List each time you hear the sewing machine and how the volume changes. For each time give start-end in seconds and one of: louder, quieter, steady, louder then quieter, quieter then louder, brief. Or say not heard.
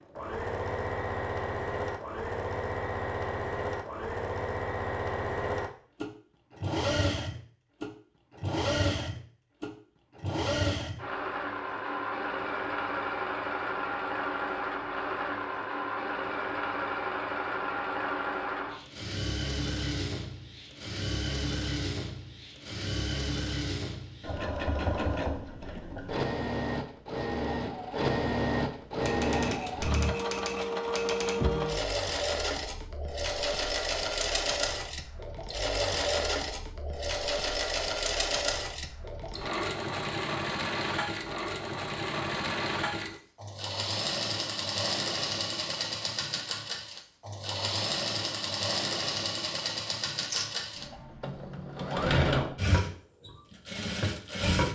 0.1-54.7 steady.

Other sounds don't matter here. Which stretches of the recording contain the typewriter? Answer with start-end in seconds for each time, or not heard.
29.0-31.4.